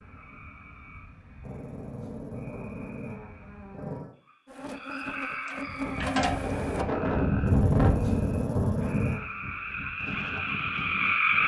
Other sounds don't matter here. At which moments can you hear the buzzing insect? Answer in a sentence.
The buzzing insect can be heard from 4.5 to 6.8 s.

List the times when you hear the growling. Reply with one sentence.
The growling can be heard from 1.4 to 4.2 s and from 7.5 to 9.2 s.